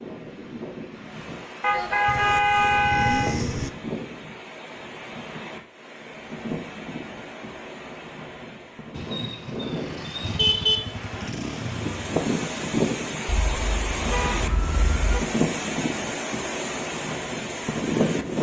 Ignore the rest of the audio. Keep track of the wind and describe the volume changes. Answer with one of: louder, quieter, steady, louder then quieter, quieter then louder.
louder.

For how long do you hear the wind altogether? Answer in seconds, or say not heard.
18 s.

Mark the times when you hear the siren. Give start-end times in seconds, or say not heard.
13.2-15.2.